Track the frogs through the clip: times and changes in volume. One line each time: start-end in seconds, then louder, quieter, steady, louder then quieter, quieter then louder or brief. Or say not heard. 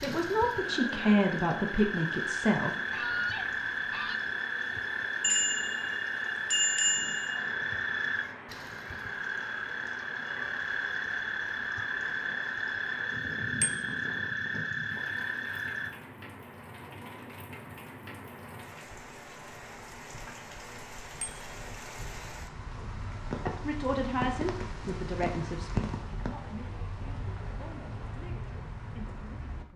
0.0-15.9 steady.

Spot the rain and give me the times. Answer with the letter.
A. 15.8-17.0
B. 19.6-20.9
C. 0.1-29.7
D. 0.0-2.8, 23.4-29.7
C.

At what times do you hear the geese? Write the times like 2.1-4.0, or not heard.
2.9-4.2.